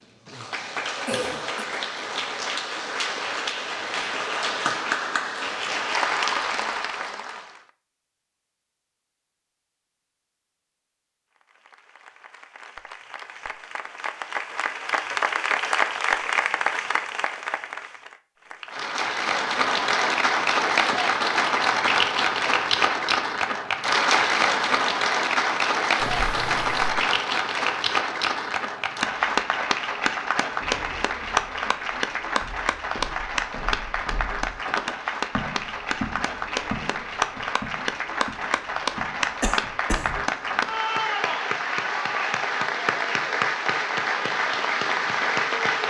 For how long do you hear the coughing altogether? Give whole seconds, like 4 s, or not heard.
2 s.